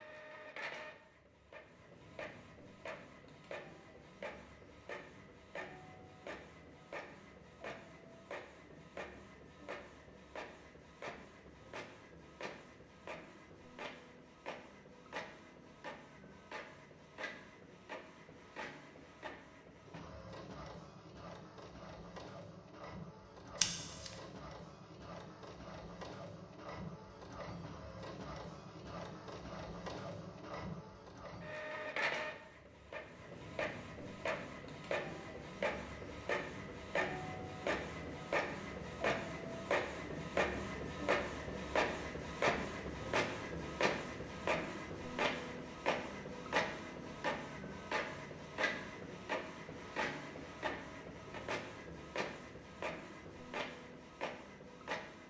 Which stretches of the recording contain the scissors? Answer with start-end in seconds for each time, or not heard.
23.6-24.1.